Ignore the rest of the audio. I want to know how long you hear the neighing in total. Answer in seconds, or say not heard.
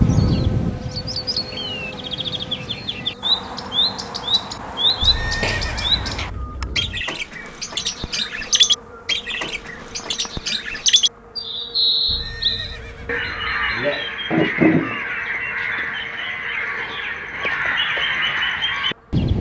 4 s.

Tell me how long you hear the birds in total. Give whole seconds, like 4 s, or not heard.
19 s.